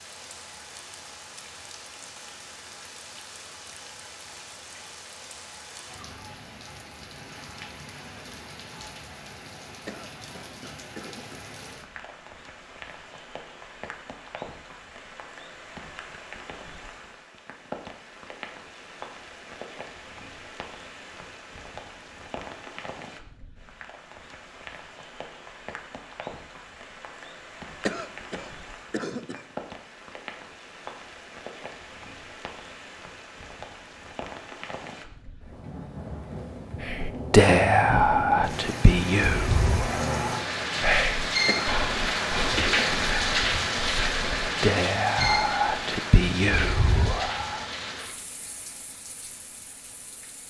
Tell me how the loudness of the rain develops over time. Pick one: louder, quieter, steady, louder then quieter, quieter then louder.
louder.